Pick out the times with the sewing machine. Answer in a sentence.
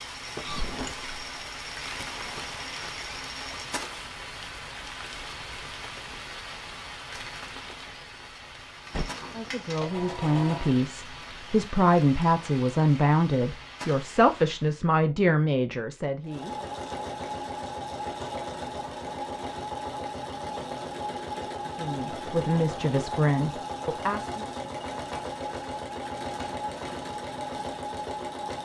You can hear the sewing machine from 0.0 to 3.8 s, from 8.8 to 10.8 s and from 16.2 to 28.6 s.